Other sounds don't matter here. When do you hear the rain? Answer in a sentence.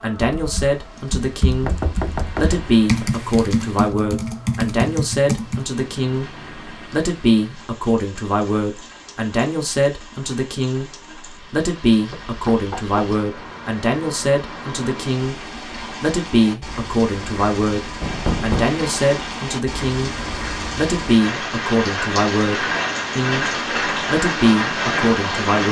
You can hear the rain from 0.0 to 25.6 s.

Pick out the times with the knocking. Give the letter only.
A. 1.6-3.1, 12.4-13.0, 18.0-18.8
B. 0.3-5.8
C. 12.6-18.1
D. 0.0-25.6
A.